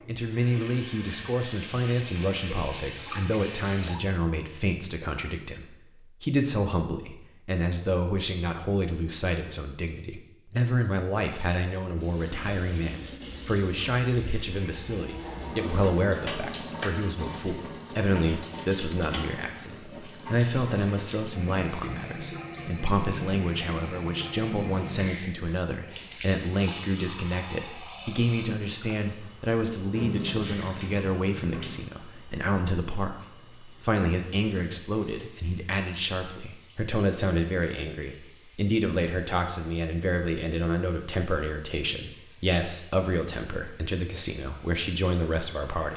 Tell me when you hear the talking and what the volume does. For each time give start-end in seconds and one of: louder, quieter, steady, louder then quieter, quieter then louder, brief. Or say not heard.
0.1-45.9 steady.